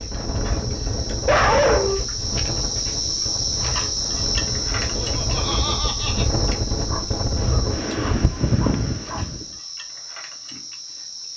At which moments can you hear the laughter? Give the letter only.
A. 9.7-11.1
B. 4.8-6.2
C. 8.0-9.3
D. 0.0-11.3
B.